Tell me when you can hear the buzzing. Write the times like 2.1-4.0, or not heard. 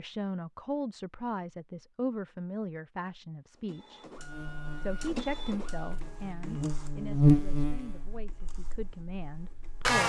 4.2-10.0.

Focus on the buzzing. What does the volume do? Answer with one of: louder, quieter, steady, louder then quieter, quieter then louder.
louder then quieter.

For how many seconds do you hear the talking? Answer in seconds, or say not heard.
9 s.